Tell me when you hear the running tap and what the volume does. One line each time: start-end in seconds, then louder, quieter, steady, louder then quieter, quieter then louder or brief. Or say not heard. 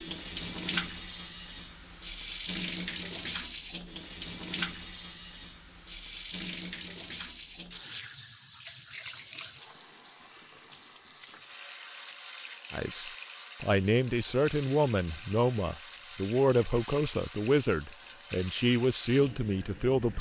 0.0-20.1 quieter.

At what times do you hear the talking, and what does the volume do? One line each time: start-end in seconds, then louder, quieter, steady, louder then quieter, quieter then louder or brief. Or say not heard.
12.7-20.1 steady.